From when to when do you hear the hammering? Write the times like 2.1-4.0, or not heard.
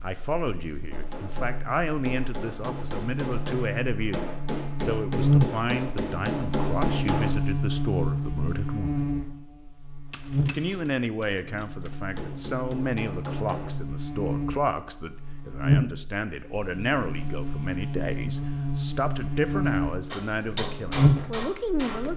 0.9-7.5, 10.1-13.8, 20.1-22.1.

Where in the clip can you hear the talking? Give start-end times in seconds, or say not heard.
0.0-9.0, 10.5-22.1.